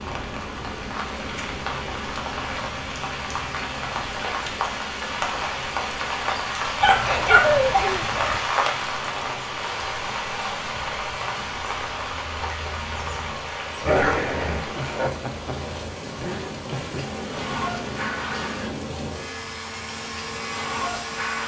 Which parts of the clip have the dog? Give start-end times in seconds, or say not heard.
6.8-8.4, 13.8-14.7.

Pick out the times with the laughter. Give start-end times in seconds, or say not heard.
7.0-8.2, 14.8-17.1.